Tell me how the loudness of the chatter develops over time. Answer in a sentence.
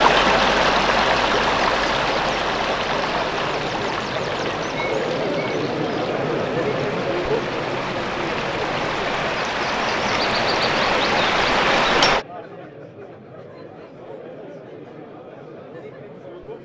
The loudness of the chatter goes up, then down.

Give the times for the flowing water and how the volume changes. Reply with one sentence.
You can hear the flowing water from 0.0 to 12.2 s, getting quieter then louder.